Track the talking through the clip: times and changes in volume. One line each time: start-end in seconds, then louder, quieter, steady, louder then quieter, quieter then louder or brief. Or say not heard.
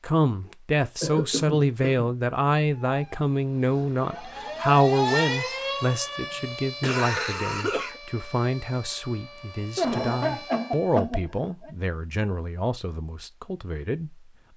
0.0-14.5 quieter.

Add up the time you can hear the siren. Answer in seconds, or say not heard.
8 s.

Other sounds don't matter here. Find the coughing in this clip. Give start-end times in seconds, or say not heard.
1.0-2.1, 6.3-8.0, 9.8-11.7.